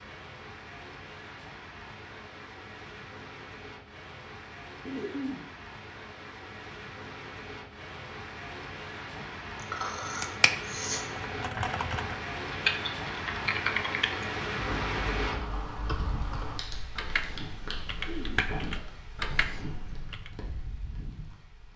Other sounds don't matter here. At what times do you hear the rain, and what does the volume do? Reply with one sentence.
The rain can be heard from 0.0 to 21.7 s, getting louder then quieter.